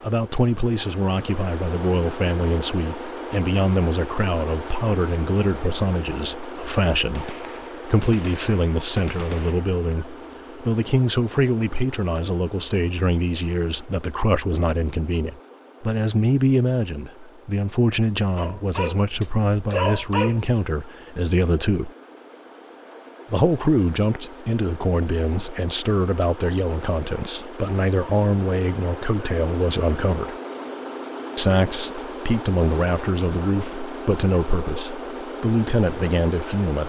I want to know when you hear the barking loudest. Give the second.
20 s.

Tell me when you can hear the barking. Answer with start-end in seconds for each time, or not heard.
18.4-20.6.